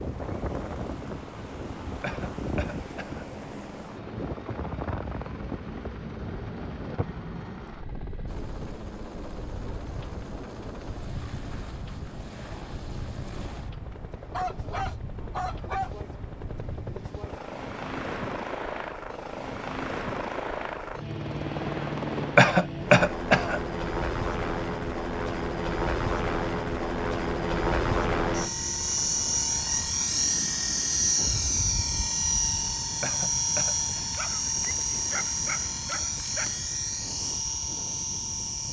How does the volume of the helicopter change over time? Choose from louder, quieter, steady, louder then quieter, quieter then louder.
louder.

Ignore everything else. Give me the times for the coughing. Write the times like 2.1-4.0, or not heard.
2.0-3.2, 22.4-23.6, 33.0-34.0.